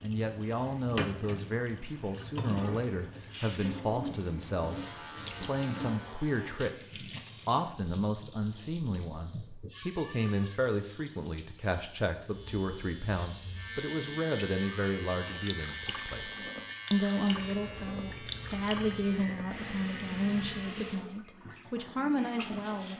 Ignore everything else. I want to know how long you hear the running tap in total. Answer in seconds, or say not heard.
23 s.